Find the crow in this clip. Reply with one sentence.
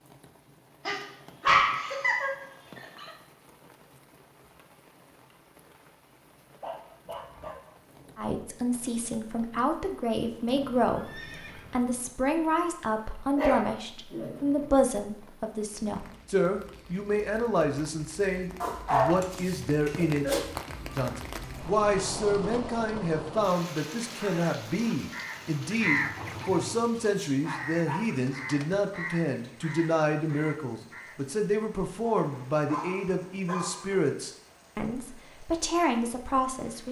The crow can be heard from 24.1 to 31.2 s.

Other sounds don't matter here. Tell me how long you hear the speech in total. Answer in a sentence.
The speech can be heard for 29 seconds in total.